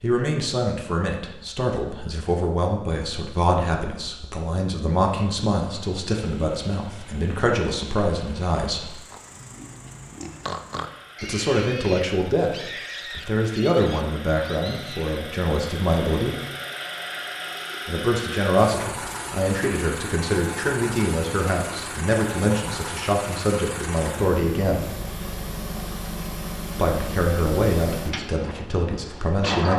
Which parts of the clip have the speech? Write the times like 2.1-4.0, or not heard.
0.0-8.9, 11.2-16.4, 17.9-24.9, 26.8-29.7.